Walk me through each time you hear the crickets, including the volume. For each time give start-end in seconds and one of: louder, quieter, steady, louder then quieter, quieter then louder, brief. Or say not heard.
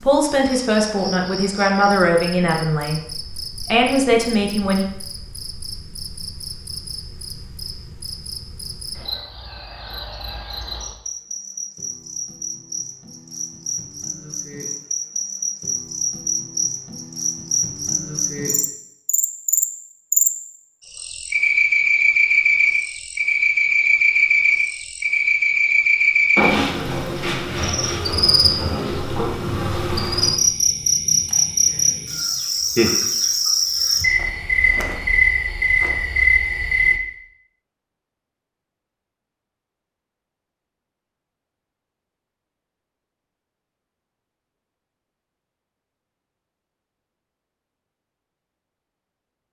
0.0-37.0 louder.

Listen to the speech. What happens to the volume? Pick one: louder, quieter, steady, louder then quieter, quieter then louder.
quieter then louder.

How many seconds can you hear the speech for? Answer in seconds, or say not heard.
5 s.